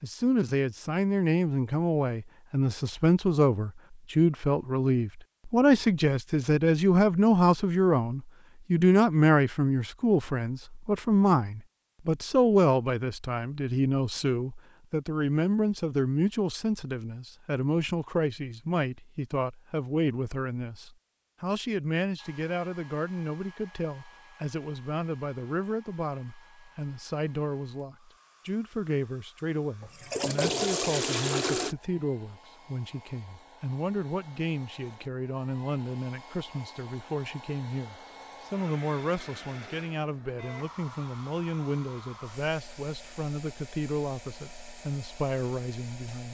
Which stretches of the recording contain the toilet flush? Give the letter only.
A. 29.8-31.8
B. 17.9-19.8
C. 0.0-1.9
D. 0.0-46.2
A.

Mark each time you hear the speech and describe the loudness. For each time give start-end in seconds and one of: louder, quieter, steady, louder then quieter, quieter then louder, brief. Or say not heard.
0.0-46.2 quieter.